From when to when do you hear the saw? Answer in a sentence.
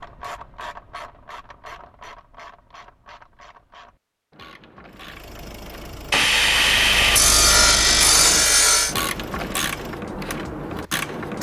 The saw can be heard from 6.1 to 8.9 s.